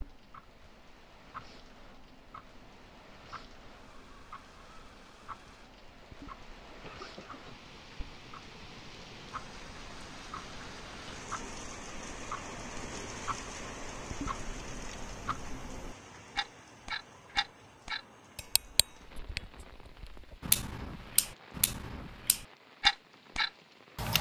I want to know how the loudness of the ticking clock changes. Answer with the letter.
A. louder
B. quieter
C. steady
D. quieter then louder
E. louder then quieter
A.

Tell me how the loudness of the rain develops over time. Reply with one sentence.
The volume of the rain goes up, then down.